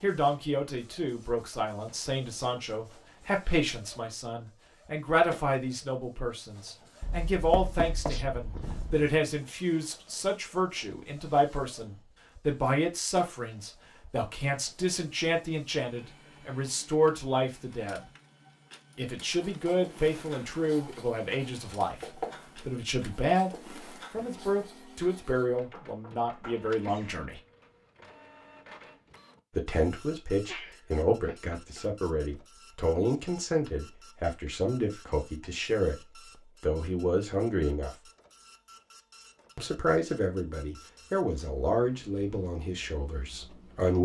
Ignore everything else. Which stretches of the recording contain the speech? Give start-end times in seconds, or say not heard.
0.0-18.1, 18.9-27.4, 29.5-37.9, 39.5-43.9.